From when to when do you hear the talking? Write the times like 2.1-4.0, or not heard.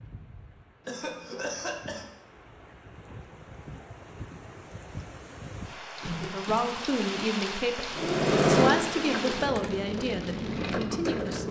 6.2-11.4.